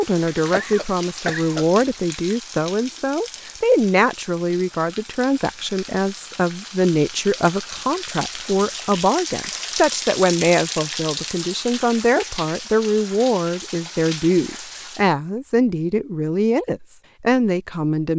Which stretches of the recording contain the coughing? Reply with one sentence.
The coughing can be heard from 0.5 to 1.8 s.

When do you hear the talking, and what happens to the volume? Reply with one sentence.
The talking can be heard from 0.0 to 18.1 s, at a steady volume.